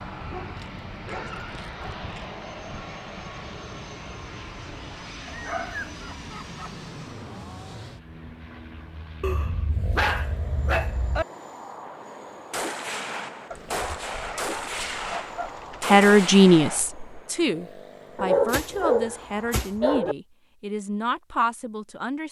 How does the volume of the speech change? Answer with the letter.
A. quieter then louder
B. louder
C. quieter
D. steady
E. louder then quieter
C.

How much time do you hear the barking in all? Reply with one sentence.
You can hear the barking for 10 seconds altogether.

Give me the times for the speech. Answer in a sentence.
The speech can be heard from 15.8 to 22.2 s.